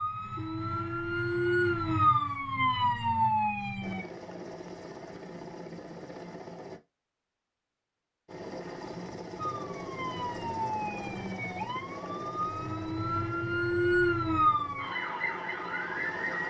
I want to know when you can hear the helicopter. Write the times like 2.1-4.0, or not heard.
3.8-6.8, 8.2-16.4.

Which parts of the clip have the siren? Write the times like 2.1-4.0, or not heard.
0.0-4.0, 9.3-16.4.